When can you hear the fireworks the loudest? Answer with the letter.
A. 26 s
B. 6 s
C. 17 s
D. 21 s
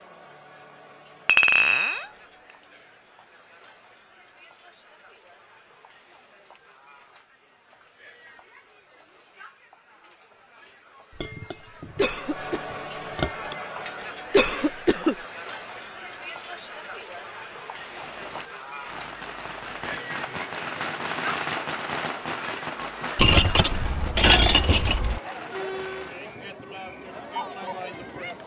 D.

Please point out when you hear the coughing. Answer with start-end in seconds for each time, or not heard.
11.9-12.6, 14.3-15.2.